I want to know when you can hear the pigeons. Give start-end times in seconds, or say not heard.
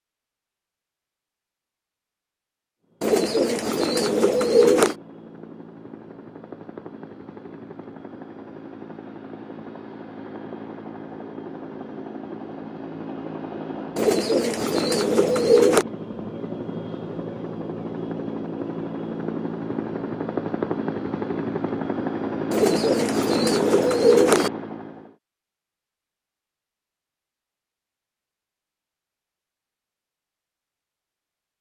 3.0-5.0, 13.9-15.8, 22.5-24.5.